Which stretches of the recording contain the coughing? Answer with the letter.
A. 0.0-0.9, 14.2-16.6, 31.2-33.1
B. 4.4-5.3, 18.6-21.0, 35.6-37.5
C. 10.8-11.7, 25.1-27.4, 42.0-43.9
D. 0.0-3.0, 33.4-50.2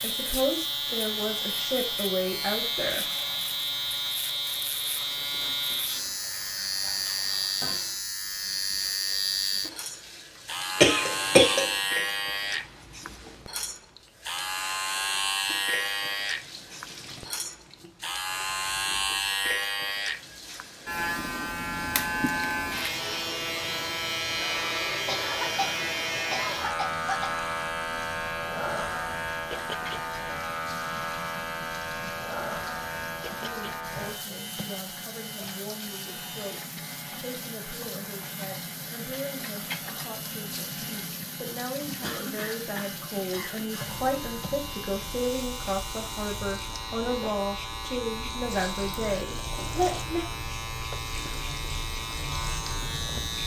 C.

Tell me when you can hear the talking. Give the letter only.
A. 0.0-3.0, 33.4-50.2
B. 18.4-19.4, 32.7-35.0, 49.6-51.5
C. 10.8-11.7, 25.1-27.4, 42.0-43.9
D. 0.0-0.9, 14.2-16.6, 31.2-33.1
A.